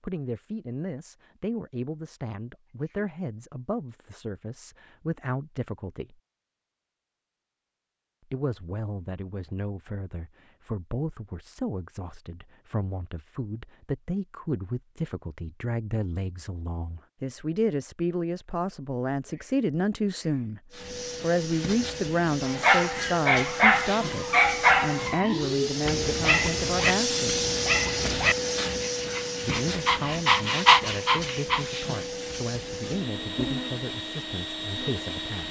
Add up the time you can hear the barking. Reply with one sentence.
You can hear the barking for 9 seconds altogether.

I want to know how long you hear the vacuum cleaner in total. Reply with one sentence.
The vacuum cleaner can be heard for 15 seconds in total.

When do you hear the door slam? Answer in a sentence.
You can't hear the door slam here.